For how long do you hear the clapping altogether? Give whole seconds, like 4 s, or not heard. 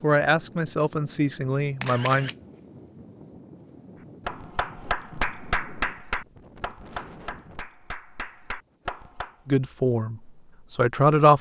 5 s.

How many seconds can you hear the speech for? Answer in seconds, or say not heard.
4 s.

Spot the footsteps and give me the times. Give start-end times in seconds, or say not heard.
not heard.